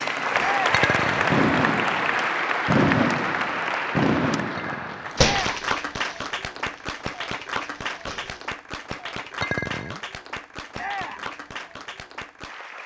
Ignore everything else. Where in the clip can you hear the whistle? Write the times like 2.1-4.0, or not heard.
not heard.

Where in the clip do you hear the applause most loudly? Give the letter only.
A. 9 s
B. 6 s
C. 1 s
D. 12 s
C.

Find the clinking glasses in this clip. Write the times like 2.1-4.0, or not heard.
0.7-1.4, 4.5-5.2, 9.4-10.0.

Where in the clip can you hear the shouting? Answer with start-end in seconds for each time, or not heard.
0.3-0.8, 5.2-5.7, 10.8-11.3.